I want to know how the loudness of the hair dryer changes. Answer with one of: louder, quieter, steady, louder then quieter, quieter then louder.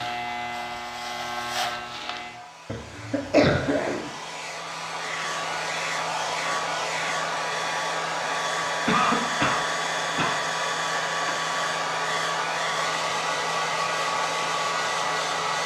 louder.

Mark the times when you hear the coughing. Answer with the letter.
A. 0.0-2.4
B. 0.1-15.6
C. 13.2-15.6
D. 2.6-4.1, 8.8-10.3
D.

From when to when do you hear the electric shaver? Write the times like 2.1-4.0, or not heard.
0.0-2.4.